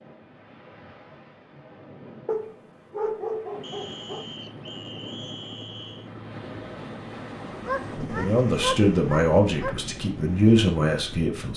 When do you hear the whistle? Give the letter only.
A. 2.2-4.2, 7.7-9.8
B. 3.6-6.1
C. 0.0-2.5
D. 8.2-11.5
B.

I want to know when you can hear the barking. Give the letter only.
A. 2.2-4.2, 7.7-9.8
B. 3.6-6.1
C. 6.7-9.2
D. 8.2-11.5
A.